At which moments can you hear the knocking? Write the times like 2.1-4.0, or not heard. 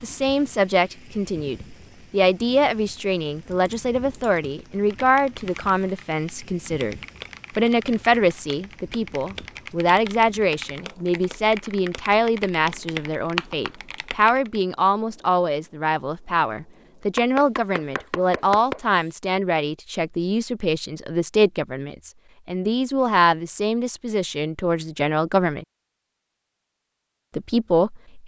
17.1-19.1.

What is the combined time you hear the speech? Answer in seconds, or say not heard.
26 s.